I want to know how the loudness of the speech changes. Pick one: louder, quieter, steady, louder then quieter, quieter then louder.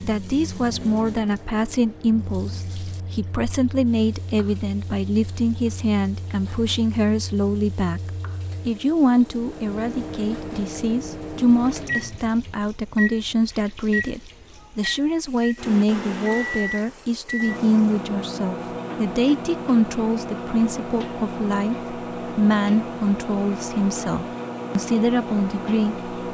steady.